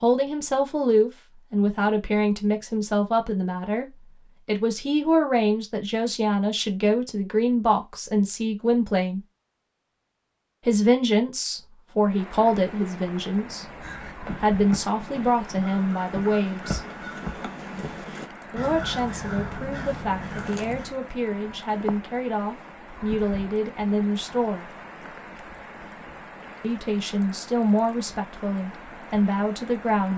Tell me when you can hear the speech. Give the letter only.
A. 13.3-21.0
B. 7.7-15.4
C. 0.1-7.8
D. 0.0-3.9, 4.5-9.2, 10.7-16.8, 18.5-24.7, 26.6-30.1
D.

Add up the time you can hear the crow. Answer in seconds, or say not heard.
8 s.